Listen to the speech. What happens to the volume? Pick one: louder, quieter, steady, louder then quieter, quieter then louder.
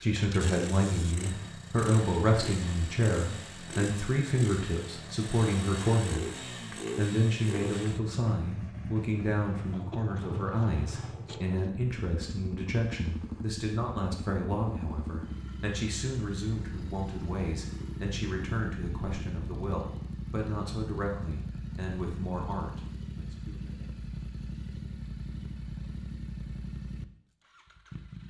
quieter.